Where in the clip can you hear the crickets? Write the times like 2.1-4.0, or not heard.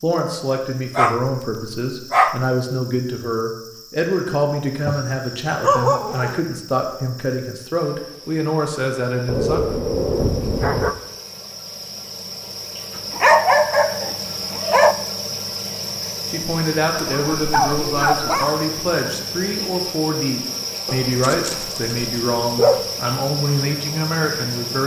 0.0-24.8.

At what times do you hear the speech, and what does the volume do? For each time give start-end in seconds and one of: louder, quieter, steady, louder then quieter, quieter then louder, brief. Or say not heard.
0.0-9.6 steady
16.3-24.8 steady.